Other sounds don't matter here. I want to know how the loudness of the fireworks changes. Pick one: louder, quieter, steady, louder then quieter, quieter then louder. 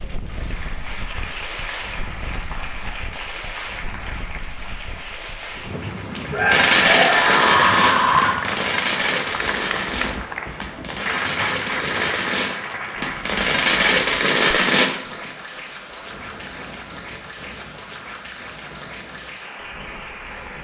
quieter then louder.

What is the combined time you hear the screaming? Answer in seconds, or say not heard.
2 s.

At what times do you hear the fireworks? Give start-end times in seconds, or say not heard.
6.5-14.9.